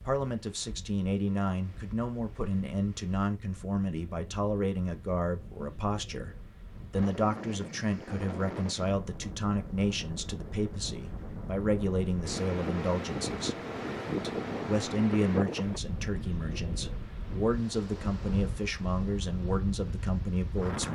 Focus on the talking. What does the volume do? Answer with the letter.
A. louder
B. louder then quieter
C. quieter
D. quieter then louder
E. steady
E.